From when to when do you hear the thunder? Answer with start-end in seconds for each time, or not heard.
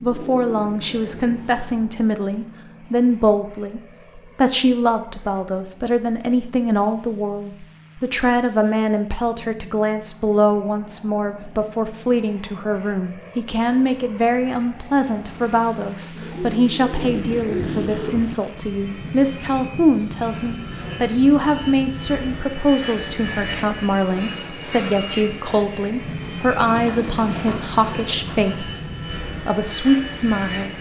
0.8-1.9, 16.9-18.4.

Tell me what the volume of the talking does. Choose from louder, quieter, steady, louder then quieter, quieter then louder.
steady.